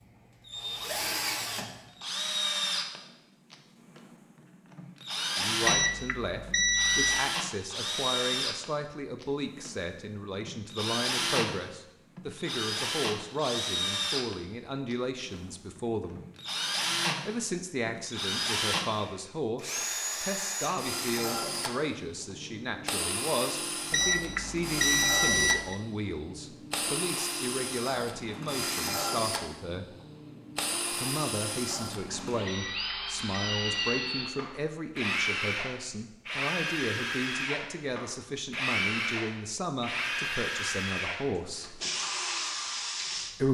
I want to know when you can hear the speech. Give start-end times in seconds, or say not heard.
5.3-16.2, 17.2-29.9, 30.9-41.8.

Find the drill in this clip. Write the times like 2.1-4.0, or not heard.
0.0-43.4.